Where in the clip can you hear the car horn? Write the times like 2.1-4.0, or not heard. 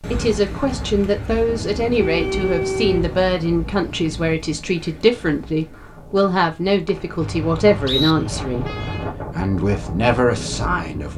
1.4-3.3, 7.2-9.2.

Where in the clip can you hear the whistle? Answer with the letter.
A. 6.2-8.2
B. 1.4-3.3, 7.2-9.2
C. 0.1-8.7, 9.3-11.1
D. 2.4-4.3
A.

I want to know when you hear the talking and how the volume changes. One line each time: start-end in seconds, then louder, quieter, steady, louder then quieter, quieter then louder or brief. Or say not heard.
0.1-8.7 steady
9.3-11.1 brief.